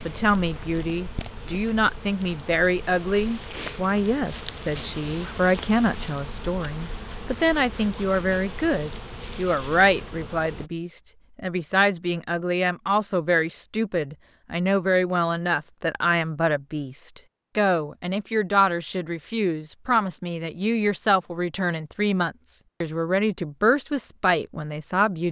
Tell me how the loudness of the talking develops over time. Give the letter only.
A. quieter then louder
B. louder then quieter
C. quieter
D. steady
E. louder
D.